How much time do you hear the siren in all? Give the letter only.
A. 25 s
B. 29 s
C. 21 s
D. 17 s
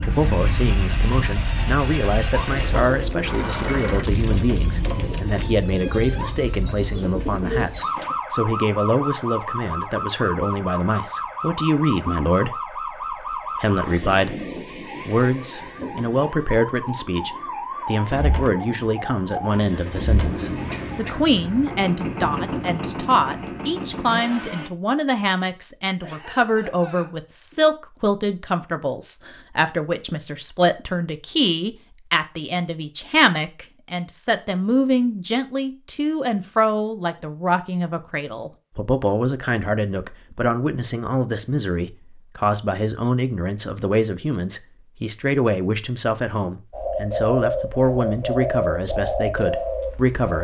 C.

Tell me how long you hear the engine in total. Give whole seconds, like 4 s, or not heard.
11 s.